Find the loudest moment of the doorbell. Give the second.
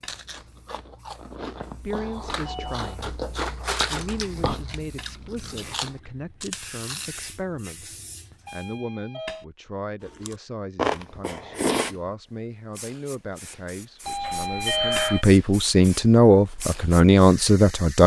15 s.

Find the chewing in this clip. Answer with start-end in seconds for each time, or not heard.
0.1-7.1, 10.1-11.9.